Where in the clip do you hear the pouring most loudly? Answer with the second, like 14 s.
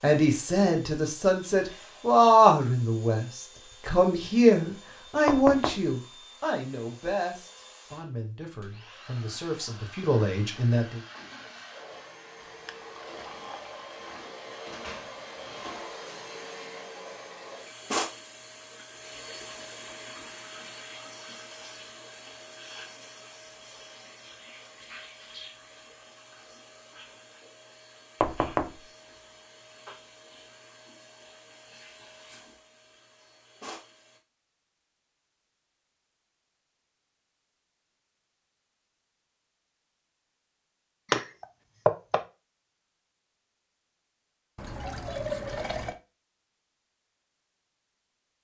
45 s.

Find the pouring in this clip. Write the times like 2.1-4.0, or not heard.
12.4-14.1, 44.5-46.0.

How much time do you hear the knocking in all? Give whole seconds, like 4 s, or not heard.
2 s.